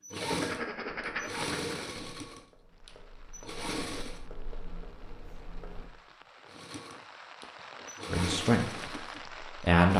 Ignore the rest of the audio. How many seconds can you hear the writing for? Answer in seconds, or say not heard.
6 s.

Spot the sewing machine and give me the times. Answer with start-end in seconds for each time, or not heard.
0.0-4.2, 6.5-9.9.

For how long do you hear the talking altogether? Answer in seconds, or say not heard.
2 s.